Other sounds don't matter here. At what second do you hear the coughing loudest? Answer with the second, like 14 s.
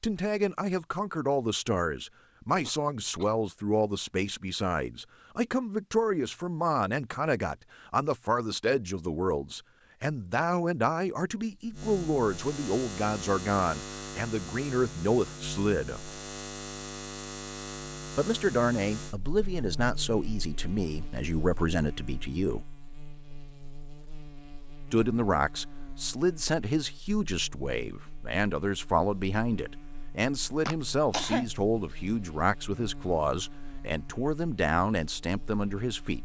31 s.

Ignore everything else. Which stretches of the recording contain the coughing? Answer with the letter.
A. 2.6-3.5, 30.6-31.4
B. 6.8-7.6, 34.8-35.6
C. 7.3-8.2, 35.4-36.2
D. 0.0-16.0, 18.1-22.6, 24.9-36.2
A.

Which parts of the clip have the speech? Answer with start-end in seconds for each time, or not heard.
0.0-16.0, 18.1-22.6, 24.9-36.2.